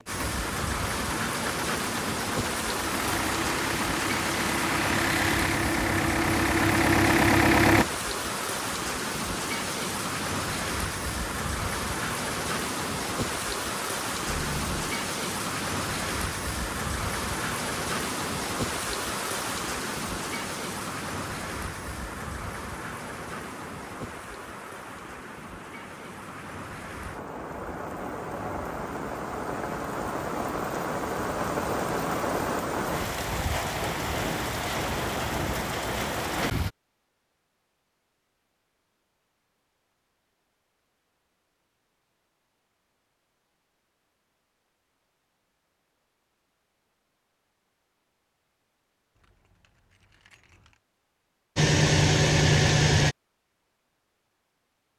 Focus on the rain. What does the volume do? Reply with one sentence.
The loudness of the rain goes down, then up.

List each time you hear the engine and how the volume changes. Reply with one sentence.
The engine can be heard from 0.0 to 7.8 s, getting louder; and briefly from 51.5 to 53.1 s.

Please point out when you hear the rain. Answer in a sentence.
The rain can be heard from 0.0 to 36.7 s.